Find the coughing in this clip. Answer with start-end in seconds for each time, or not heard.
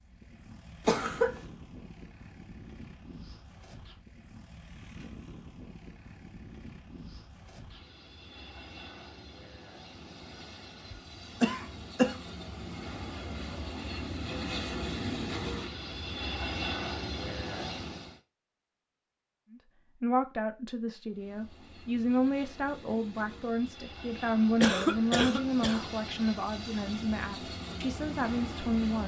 0.8-1.4, 10.9-12.2, 24.6-25.9.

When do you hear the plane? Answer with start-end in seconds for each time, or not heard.
0.0-18.2, 21.1-29.0.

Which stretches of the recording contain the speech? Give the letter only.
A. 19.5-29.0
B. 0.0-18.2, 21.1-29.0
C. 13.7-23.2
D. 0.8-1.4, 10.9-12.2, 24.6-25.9
A.